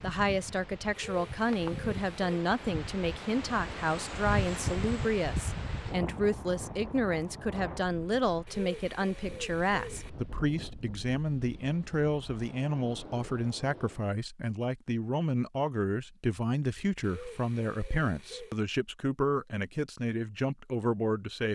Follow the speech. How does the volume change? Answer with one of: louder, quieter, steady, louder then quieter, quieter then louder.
steady.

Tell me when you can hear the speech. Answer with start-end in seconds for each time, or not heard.
0.0-21.5.